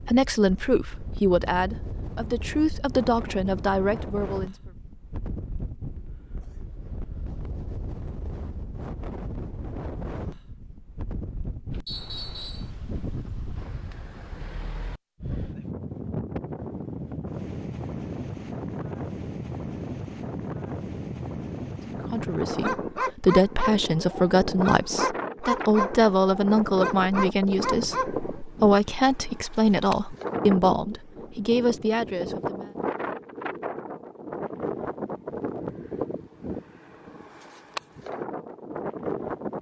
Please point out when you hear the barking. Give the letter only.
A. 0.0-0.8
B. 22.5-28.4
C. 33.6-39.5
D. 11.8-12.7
B.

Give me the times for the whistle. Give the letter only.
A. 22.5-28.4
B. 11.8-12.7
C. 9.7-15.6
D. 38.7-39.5
B.